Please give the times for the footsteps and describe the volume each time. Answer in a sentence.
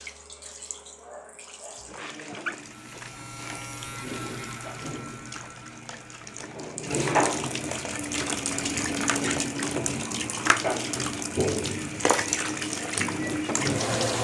You can't hear the footsteps here.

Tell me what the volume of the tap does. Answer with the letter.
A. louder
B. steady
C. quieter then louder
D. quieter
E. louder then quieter
A.